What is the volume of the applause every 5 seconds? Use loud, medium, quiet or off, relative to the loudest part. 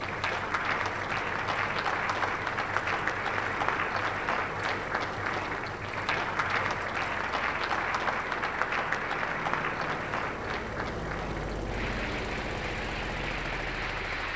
loud, loud, medium.